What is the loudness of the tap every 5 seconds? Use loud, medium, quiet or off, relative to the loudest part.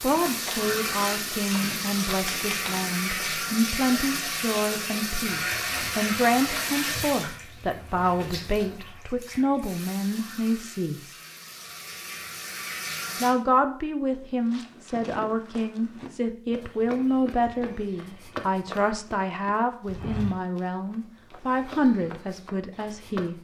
loud, loud, medium, off, off.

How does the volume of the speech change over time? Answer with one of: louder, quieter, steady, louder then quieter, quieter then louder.
steady.